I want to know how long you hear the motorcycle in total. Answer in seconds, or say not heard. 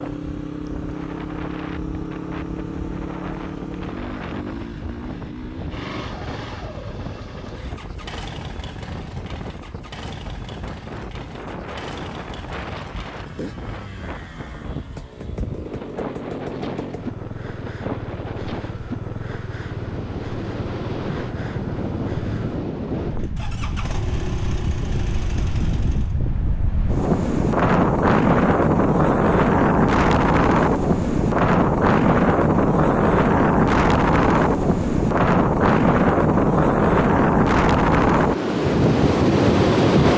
26 s.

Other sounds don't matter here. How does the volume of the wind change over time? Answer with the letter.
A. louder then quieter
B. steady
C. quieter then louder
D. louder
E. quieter
D.